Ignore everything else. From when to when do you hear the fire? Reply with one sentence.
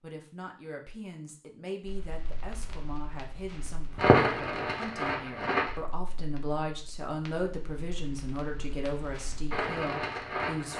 You can hear the fire from 1.9 to 10.7 s.